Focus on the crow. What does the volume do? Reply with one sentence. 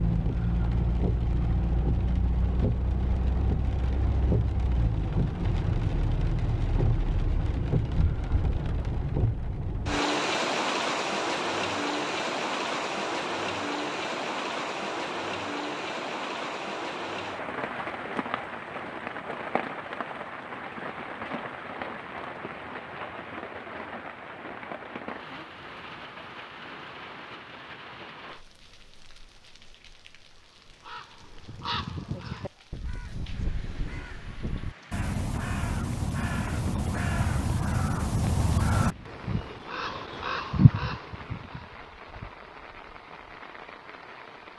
The volume of the crow goes up.